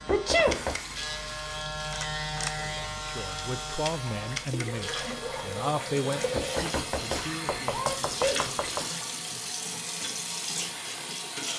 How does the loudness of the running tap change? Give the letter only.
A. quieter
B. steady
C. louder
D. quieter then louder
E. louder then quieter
C.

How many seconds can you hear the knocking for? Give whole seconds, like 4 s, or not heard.
3 s.